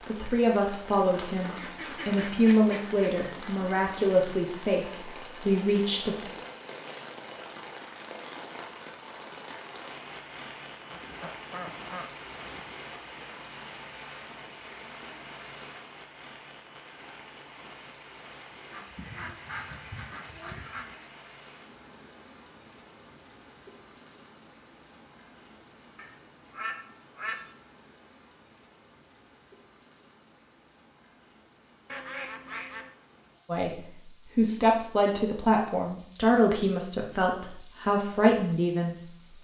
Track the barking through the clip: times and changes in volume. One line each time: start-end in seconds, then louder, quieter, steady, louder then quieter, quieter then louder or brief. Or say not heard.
not heard.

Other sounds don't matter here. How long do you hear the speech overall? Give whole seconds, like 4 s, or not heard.
12 s.